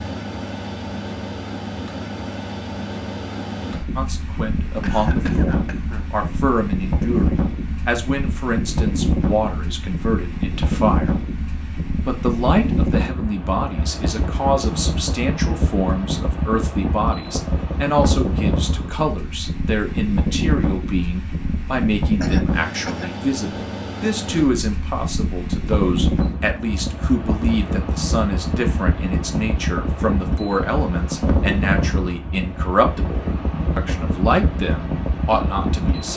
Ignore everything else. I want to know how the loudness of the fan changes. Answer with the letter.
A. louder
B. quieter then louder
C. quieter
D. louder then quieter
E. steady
E.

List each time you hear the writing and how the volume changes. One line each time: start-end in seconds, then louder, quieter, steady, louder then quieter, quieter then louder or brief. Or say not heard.
not heard.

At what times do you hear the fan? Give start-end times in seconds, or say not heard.
0.0-36.1.